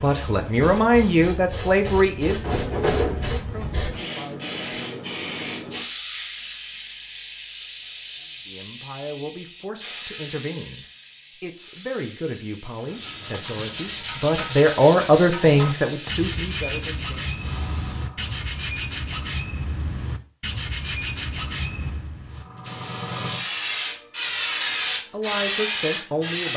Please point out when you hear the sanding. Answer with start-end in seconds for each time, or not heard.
12.8-22.9.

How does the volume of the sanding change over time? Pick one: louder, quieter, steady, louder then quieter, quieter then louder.
steady.